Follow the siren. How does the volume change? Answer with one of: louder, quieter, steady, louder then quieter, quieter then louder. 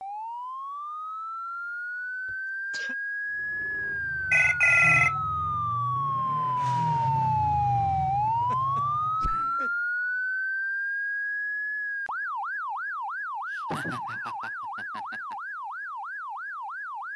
louder then quieter.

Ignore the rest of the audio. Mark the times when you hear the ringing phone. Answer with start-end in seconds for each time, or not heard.
4.3-5.2.